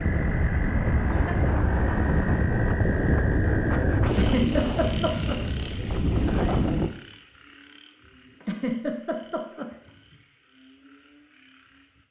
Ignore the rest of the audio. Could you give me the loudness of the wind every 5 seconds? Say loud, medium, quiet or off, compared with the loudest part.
loud, loud, off.